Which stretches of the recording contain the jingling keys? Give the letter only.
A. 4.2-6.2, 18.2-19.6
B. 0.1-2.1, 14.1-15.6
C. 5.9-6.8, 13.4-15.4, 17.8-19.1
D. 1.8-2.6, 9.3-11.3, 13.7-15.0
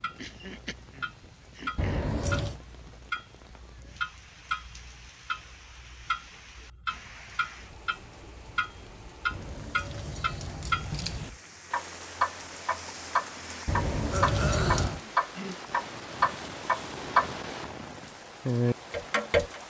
D.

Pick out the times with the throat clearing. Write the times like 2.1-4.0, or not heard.
0.1-2.1, 14.1-15.6.